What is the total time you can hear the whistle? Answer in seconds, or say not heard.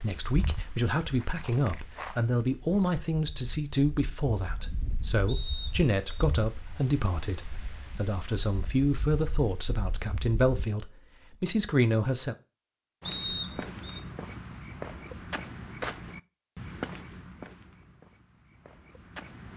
2 s.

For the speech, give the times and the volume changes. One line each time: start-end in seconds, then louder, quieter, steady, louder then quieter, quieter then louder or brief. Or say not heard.
0.0-12.3 steady.